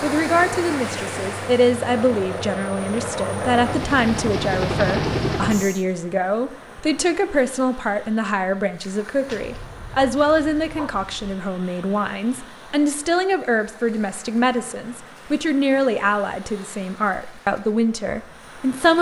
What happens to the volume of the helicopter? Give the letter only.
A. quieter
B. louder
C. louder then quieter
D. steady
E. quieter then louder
B.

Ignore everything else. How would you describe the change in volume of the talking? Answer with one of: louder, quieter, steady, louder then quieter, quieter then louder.
steady.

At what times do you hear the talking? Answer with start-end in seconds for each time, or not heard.
0.0-18.9.